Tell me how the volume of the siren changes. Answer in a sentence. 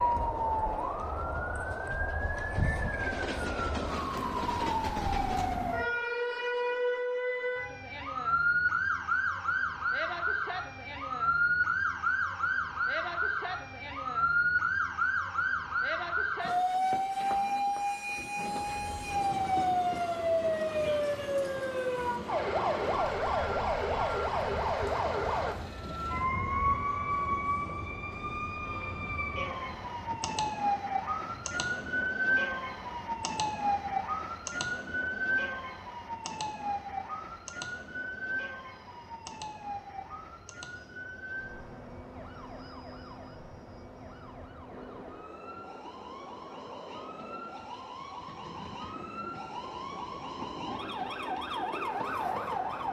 The loudness of the siren goes down.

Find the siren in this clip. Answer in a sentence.
You can hear the siren from 0.0 to 52.8 s.